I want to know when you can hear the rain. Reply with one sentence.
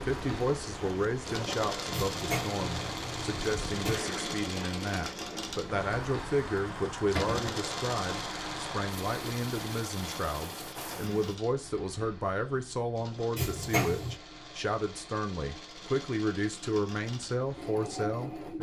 You can hear the rain from 0.0 to 11.3 s.